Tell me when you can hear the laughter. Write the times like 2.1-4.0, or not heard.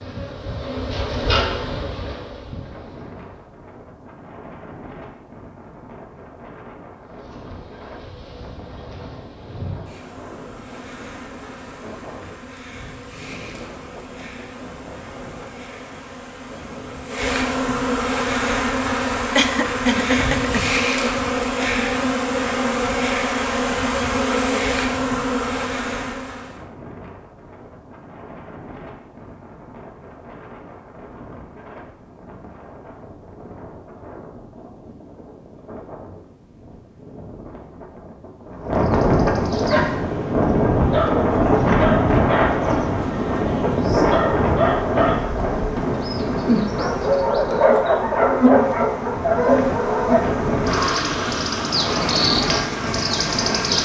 19.4-20.8.